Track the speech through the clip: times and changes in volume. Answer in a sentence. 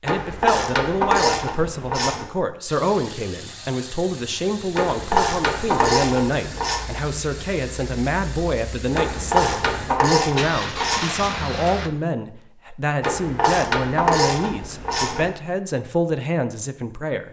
You can hear the speech from 0.0 to 17.2 s, at a steady volume.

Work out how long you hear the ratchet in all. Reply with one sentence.
The ratchet can be heard for 9 seconds in total.